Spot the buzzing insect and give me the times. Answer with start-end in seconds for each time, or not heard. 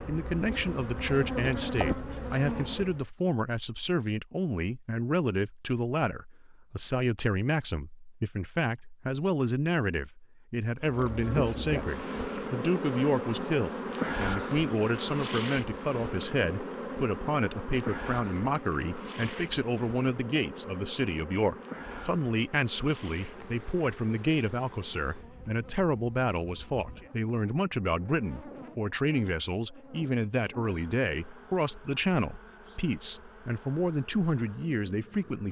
0.0-3.0, 10.8-35.4.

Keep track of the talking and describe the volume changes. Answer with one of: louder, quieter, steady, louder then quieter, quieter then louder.
steady.